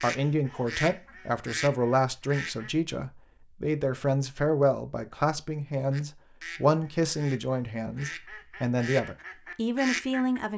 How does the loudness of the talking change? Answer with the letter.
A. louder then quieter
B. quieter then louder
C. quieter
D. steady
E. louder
D.